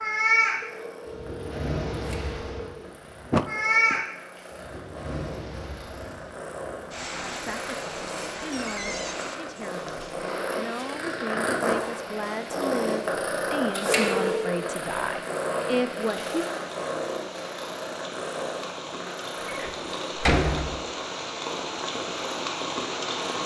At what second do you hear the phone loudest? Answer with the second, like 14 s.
14 s.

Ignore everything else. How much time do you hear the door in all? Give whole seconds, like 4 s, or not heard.
3 s.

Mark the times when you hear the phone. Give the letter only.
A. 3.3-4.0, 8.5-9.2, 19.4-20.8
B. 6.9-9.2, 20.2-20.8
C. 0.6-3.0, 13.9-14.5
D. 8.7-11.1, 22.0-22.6
C.